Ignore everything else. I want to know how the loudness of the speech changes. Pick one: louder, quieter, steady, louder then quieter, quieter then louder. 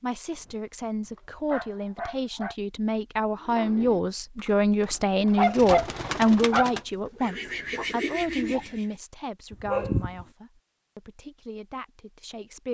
louder then quieter.